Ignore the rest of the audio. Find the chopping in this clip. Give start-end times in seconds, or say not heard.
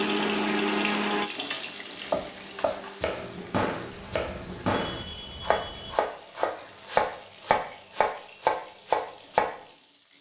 2.1-9.5.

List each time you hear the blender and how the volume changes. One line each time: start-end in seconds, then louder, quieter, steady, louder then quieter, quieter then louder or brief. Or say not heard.
0.0-4.2 quieter.